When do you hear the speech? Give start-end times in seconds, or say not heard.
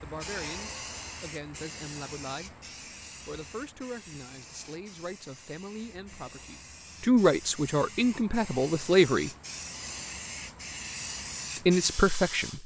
0.0-2.5, 3.2-9.3, 11.6-12.6.